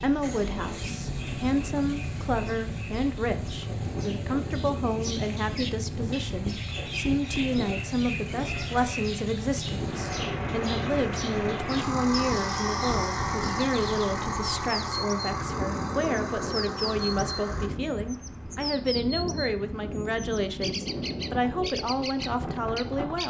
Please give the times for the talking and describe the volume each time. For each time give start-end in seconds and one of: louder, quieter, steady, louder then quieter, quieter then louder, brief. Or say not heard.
0.0-23.2 steady.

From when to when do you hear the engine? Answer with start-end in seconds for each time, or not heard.
0.1-17.7.